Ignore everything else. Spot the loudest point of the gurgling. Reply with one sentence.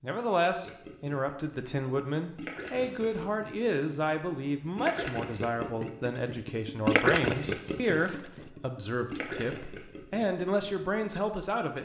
The loudest moment of the gurgling is at 7 seconds.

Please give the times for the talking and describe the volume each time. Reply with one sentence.
You can hear the talking from 0.0 to 11.8 s, at a steady volume.